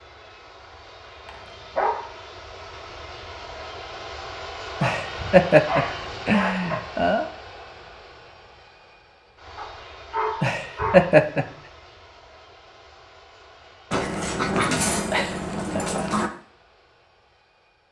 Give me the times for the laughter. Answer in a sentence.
You can hear the laughter from 4.8 to 7.2 s and from 10.4 to 11.4 s.